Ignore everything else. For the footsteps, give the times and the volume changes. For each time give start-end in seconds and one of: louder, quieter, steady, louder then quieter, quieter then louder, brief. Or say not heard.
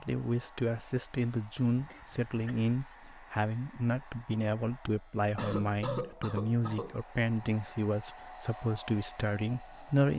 not heard.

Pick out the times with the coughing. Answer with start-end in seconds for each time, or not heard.
1.8-2.7, 5.3-7.0.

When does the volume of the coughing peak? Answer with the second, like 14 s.
6 s.